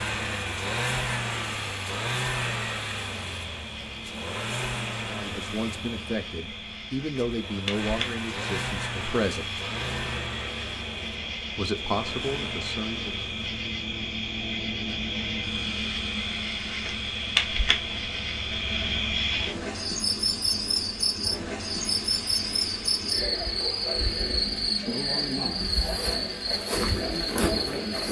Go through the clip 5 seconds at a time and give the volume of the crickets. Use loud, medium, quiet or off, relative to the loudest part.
quiet, medium, medium, loud, loud, loud.